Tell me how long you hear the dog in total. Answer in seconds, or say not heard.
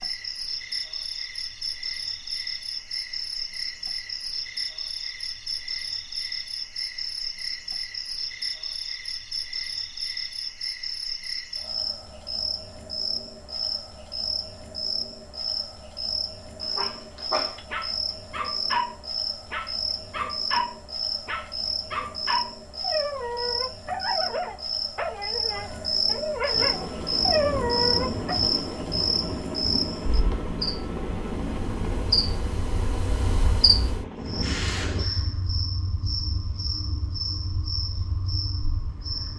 12 s.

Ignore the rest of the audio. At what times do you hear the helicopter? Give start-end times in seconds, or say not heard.
26.5-35.0.